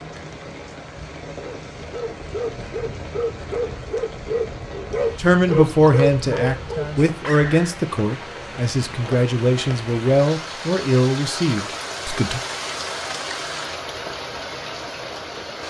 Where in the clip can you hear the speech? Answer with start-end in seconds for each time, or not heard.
5.2-12.4.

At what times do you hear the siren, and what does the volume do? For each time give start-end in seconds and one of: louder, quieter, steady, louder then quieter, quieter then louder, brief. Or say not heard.
not heard.